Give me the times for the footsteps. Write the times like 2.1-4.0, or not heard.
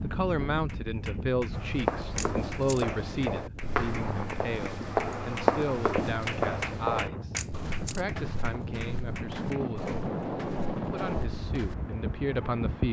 1.5-11.8.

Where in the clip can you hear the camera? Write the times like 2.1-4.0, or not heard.
2.1-2.9, 7.3-8.1.